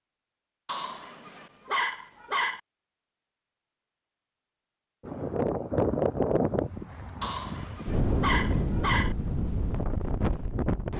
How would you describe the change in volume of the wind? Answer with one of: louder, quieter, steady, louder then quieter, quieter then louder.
quieter.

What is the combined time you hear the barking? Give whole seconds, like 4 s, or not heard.
4 s.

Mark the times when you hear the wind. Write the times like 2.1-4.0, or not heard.
5.0-10.9.